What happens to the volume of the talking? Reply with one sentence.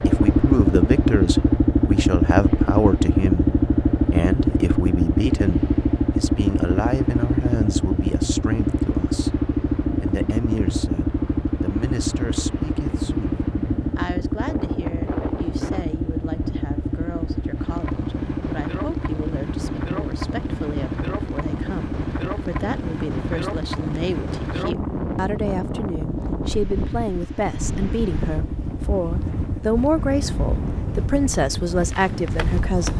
The volume of the talking goes down, then up.